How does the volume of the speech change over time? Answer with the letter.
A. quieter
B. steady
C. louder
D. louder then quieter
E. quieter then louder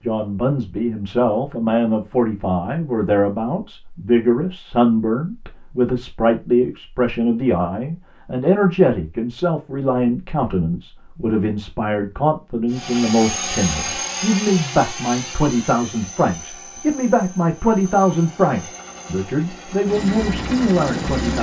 B.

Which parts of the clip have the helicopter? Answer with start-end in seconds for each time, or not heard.
12.7-21.3.